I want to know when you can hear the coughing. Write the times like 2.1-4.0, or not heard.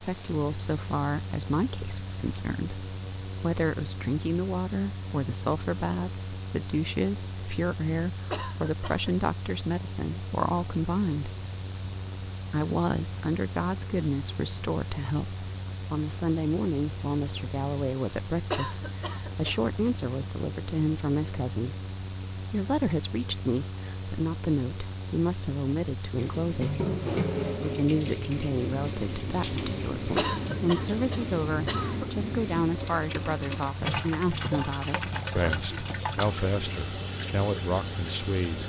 8.3-9.1, 18.5-19.6, 30.1-32.0.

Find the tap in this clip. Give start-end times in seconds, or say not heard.
26.1-38.6.